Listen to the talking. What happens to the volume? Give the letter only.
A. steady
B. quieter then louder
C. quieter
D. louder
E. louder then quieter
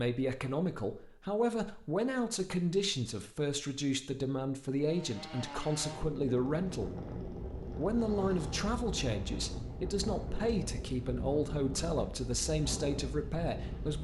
A.